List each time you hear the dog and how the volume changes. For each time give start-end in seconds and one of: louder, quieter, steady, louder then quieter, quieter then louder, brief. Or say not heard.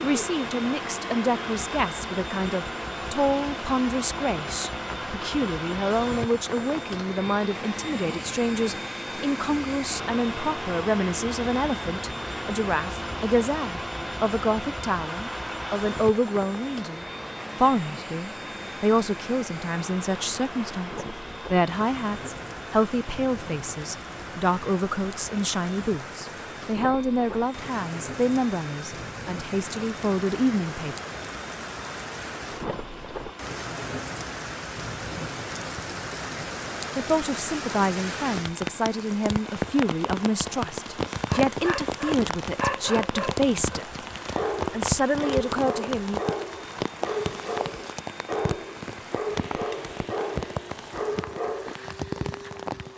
41.2-51.8 steady.